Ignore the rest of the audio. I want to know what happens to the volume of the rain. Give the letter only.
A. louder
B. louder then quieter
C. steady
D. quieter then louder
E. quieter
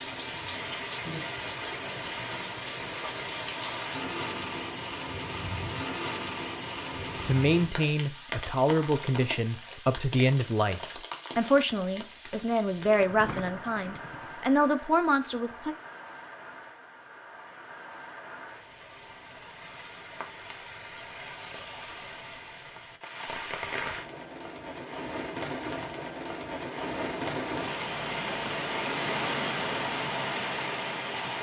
D.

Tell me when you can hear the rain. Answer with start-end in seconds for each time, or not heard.
0.0-31.3.